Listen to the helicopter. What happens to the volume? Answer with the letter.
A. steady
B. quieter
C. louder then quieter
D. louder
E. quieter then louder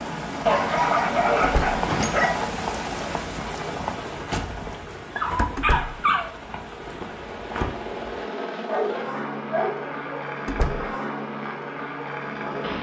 E.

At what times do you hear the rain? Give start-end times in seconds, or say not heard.
0.0-8.2.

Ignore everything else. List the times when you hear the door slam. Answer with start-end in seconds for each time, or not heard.
1.4-1.8, 5.5-6.0, 10.4-10.9.